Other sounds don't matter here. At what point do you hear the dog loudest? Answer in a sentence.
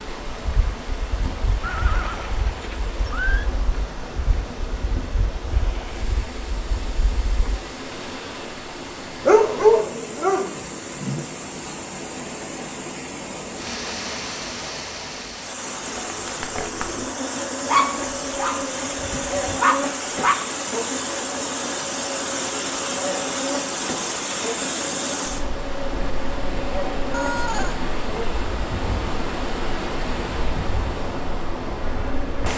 The loudest moment of the dog is at 10 seconds.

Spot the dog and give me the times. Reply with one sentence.
You can hear the dog from 9.2 to 11.2 s and from 17.6 to 20.4 s.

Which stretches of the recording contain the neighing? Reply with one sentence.
You can hear the neighing from 1.6 to 3.5 s and from 27.1 to 27.8 s.